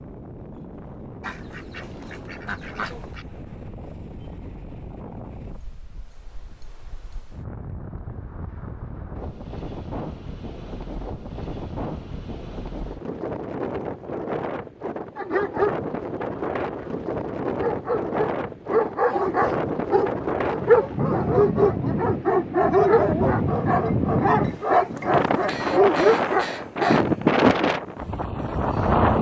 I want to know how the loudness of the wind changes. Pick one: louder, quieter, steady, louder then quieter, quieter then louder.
louder.